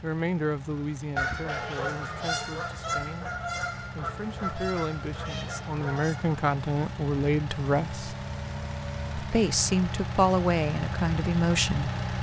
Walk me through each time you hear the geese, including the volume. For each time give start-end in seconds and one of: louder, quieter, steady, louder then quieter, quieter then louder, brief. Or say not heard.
1.1-6.4 quieter.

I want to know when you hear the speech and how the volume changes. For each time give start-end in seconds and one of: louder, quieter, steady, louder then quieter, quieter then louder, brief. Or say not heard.
0.0-8.2 quieter then louder
9.2-11.9 brief.